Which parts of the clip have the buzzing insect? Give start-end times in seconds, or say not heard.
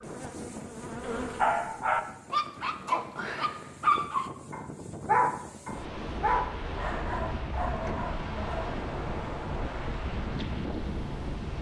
0.0-1.9.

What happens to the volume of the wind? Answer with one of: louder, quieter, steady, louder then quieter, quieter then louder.
louder.